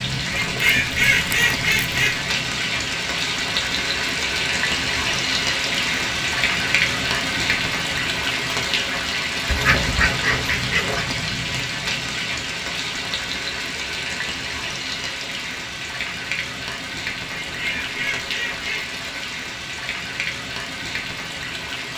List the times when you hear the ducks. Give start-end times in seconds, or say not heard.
0.3-2.3, 9.4-11.1, 17.4-19.0.